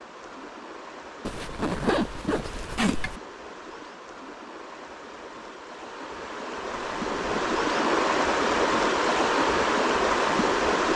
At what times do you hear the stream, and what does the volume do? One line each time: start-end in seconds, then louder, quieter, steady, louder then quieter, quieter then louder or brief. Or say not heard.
0.0-10.9 louder.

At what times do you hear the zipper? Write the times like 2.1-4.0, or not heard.
1.2-3.2, 7.0-7.6.